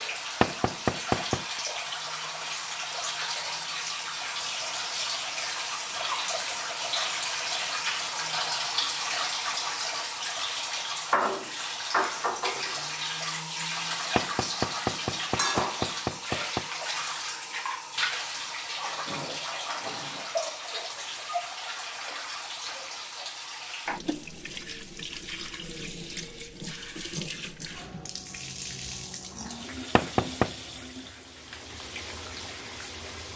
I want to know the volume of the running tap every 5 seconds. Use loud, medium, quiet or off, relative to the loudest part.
loud, loud, loud, loud, medium, medium, medium.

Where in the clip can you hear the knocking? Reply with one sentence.
The knocking can be heard from 0.4 to 1.4 s, from 14.2 to 16.6 s and from 29.9 to 30.5 s.